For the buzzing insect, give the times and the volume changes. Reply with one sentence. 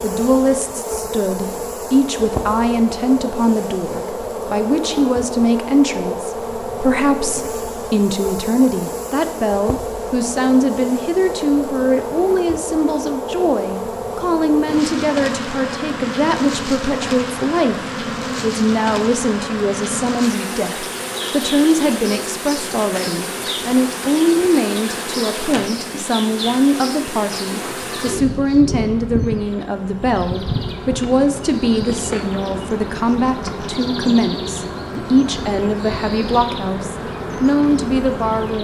The buzzing insect can be heard from 0.0 to 38.5 s, at a steady volume.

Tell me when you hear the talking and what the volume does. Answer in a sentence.
You can hear the talking from 0.0 to 38.5 s, at a steady volume.